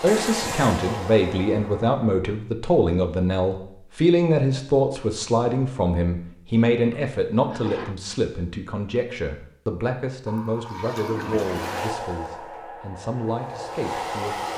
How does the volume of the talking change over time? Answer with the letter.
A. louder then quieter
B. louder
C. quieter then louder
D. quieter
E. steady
D.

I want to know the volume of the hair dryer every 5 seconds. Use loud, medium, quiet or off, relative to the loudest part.
loud, off, loud.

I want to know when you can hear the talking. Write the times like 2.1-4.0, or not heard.
0.0-14.5.